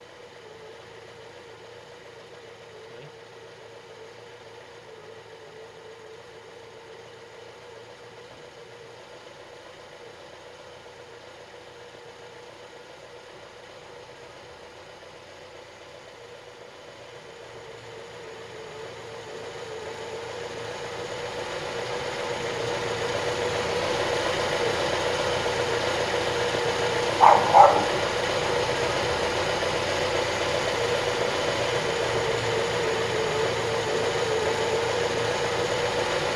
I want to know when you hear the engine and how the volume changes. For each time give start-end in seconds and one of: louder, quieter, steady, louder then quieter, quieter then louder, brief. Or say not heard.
0.0-36.3 louder.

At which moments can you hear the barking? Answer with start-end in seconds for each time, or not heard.
27.2-27.9.